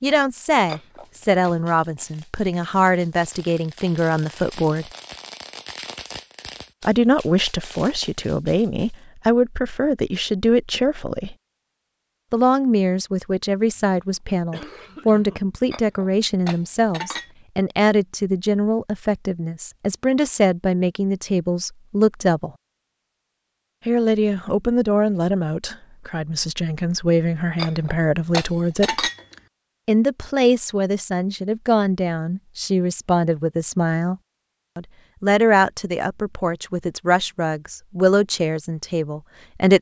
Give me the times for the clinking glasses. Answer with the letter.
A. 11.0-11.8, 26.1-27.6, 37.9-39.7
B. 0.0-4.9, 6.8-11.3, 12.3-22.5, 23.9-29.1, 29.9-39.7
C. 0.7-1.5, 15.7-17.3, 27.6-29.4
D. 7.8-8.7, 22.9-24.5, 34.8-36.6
C.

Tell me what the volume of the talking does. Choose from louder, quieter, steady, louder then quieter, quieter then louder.
steady.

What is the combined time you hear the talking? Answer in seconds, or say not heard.
35 s.